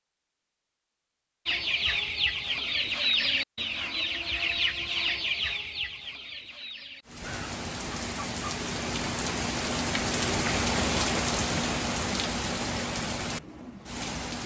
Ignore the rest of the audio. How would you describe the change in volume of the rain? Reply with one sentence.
The loudness of the rain goes up, then down.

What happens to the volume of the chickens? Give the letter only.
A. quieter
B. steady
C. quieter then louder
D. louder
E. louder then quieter
A.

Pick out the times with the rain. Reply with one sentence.
You can hear the rain from 7.0 to 14.4 s.